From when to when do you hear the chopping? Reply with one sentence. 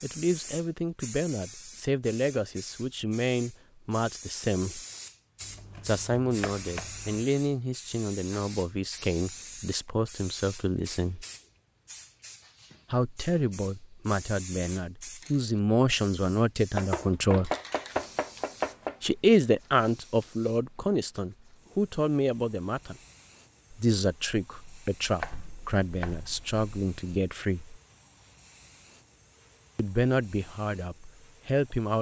The chopping can be heard from 5.4 to 7.2 s, from 16.7 to 18.9 s and from 25.2 to 26.6 s.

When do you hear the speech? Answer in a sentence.
The speech can be heard from 0.0 to 4.8 s, from 5.8 to 11.2 s, from 12.9 to 17.5 s, from 19.0 to 22.9 s, from 23.7 to 27.8 s and from 29.8 to 31.9 s.